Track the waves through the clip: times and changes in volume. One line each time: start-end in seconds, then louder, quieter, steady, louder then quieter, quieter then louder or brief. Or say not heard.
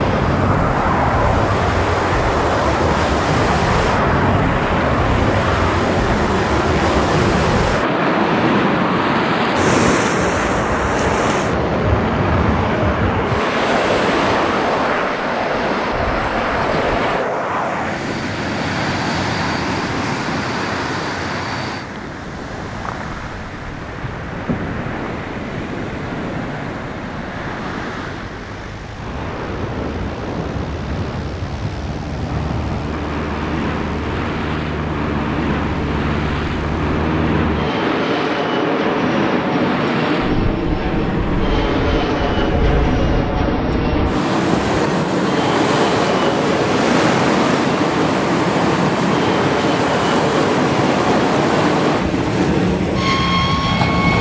0.0-54.1 quieter then louder.